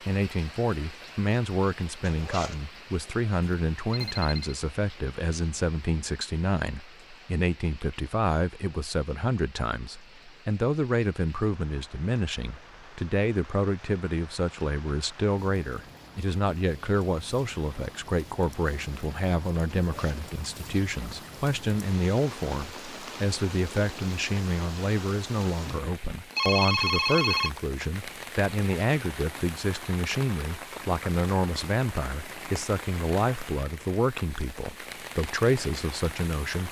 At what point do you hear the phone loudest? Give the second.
27 s.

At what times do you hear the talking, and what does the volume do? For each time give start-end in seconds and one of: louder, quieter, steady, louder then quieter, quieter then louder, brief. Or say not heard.
0.1-36.6 steady.